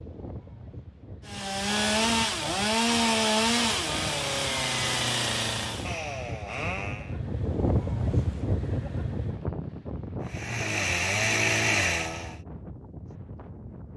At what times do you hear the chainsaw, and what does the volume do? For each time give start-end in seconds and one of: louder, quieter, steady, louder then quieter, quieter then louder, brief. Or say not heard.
1.2-7.2 quieter
10.2-12.4 brief.